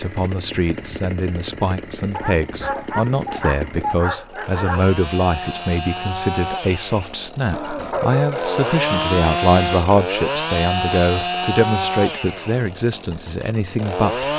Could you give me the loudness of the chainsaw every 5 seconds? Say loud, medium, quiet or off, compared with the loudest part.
medium, loud, loud.